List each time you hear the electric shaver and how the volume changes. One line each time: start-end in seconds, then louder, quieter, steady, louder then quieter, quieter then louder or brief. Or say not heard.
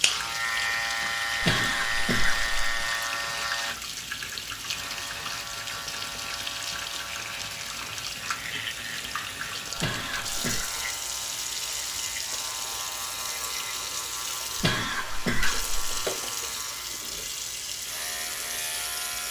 0.0-19.2 quieter.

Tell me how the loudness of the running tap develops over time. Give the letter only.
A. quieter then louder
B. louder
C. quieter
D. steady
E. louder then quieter
D.